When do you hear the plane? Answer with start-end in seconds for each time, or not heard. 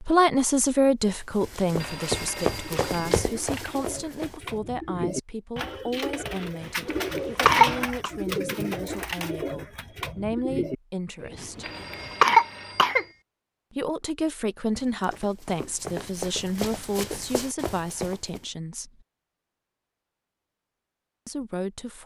not heard.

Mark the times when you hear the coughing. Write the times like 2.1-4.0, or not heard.
6.9-8.1, 11.7-13.1.